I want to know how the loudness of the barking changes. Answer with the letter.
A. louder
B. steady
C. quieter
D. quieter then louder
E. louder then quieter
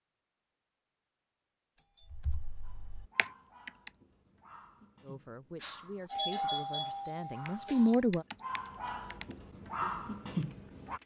A.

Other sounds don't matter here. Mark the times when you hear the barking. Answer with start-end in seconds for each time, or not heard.
2.6-11.0.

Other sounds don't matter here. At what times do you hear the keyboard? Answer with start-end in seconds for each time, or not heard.
2.1-3.9, 7.5-11.0.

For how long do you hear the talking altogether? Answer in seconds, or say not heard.
3 s.